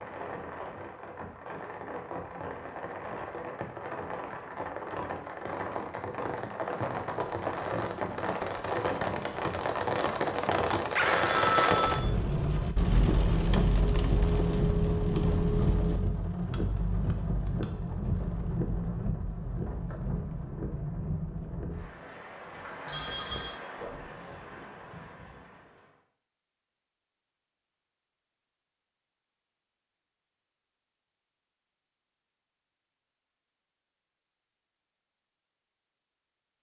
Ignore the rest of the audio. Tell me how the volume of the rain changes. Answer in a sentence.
The loudness of the rain goes up, then down.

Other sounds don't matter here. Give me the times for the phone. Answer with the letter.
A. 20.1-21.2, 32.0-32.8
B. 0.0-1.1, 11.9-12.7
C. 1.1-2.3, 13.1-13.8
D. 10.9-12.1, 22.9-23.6
D.